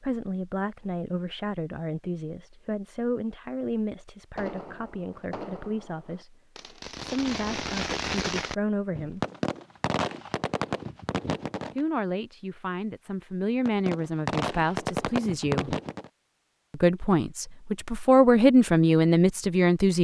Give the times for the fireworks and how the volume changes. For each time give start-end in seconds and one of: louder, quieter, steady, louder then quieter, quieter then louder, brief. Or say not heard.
4.3-11.8 louder
13.7-16.1 brief.